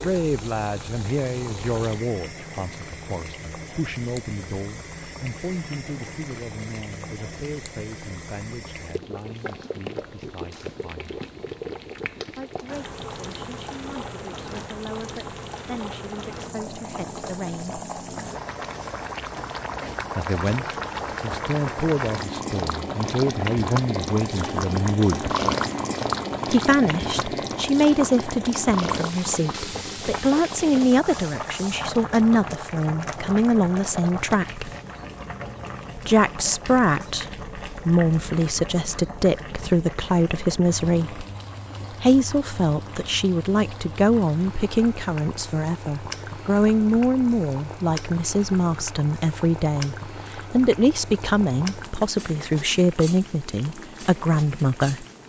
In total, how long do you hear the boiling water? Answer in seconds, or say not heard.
55 s.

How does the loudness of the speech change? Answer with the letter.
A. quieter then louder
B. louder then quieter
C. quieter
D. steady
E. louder
E.